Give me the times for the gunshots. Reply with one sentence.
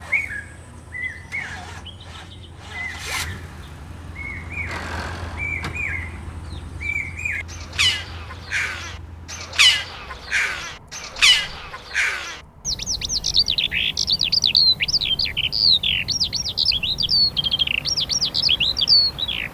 The gunshots can't be heard in this clip.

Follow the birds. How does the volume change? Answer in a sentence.
The volume of the birds goes up.